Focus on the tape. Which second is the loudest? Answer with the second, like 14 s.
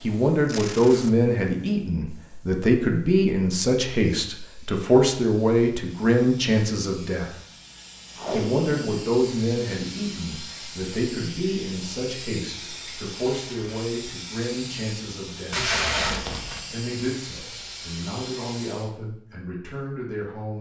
16 s.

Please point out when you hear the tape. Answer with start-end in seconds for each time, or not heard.
0.5-1.1, 8.2-9.1, 15.5-16.6.